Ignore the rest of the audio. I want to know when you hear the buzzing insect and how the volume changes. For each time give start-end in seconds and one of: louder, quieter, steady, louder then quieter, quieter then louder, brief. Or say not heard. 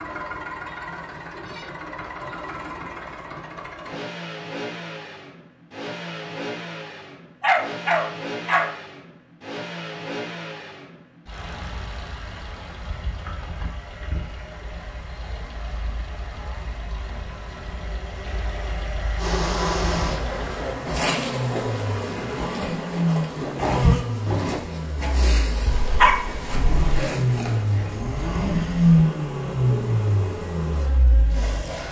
19.1-31.8 quieter.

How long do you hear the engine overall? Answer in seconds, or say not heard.
32 s.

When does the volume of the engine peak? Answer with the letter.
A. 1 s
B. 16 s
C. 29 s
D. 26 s
C.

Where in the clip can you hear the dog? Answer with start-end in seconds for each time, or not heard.
7.4-8.7, 25.8-27.0.